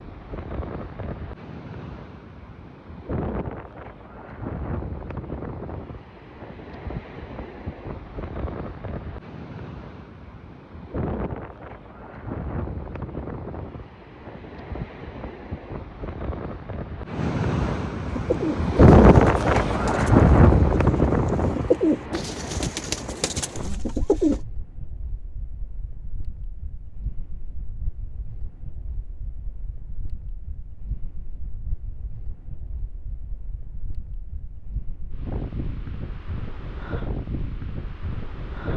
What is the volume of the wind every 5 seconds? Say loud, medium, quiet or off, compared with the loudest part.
quiet, quiet, quiet, loud, loud, quiet, quiet, quiet.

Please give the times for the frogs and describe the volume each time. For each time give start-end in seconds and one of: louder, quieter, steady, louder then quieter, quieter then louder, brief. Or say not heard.
not heard.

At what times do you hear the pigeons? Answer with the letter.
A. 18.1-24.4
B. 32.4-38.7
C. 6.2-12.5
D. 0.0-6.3
A.